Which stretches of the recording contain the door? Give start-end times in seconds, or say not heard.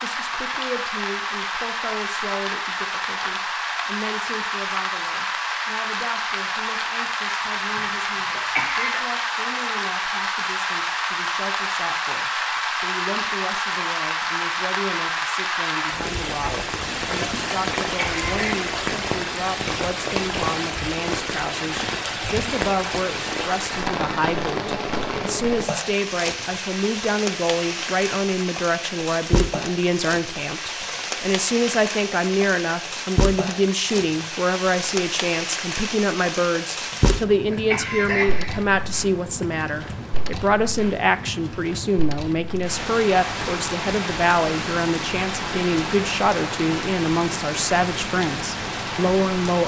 not heard.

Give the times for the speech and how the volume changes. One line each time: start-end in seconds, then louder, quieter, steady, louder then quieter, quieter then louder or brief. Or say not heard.
0.0-49.6 louder.